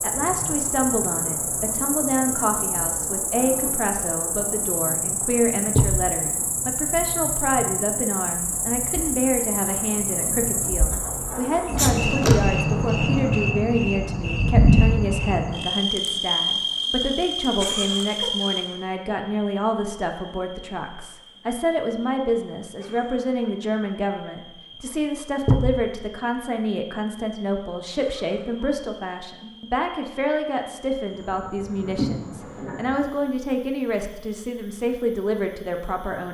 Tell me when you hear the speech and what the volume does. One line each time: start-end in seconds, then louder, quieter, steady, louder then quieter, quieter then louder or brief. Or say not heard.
0.0-36.2 steady.